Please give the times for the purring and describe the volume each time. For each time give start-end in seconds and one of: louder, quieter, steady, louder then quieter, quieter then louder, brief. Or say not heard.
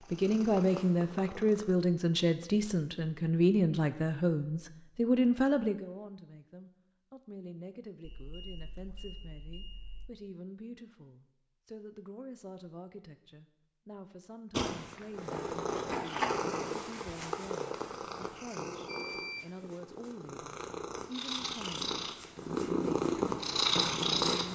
0.0-1.8 brief
14.5-24.5 quieter then louder.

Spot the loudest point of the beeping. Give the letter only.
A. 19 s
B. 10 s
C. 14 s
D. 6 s
A.